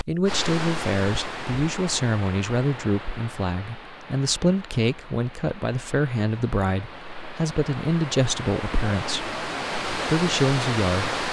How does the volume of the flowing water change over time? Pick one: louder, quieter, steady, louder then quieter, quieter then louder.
quieter then louder.